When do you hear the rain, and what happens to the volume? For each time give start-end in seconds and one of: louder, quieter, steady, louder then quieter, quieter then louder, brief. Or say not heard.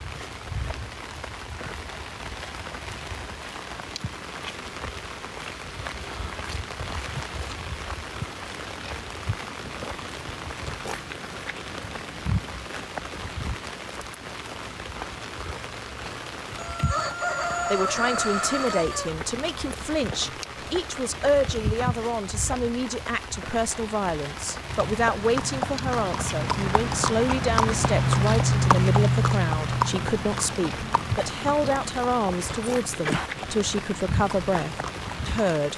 0.0-35.7 steady.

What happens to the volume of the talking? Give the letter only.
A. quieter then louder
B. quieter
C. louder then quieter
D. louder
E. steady
E.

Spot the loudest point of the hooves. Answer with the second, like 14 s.
29 s.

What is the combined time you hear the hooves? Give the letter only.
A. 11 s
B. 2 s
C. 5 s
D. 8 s
A.